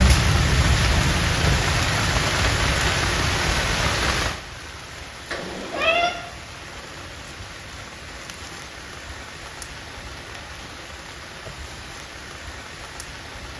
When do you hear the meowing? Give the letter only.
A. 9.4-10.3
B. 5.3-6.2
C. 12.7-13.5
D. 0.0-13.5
B.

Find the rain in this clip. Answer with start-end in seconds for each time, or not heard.
0.0-13.5.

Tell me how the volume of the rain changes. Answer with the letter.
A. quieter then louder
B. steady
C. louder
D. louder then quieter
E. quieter
E.